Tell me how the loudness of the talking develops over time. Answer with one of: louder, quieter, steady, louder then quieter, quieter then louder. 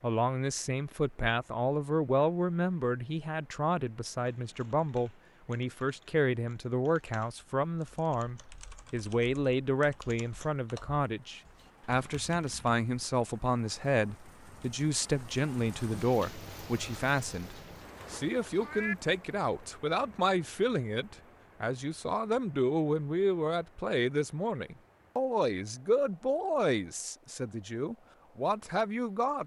steady.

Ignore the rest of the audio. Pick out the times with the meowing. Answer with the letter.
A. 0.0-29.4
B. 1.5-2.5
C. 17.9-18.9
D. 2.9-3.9
C.